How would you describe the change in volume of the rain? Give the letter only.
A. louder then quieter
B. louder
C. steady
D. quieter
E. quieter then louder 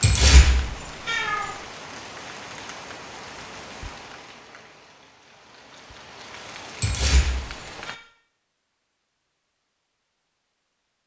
E.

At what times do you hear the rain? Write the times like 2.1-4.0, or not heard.
0.0-8.0.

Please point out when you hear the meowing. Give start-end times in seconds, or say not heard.
0.0-1.4, 6.8-8.0.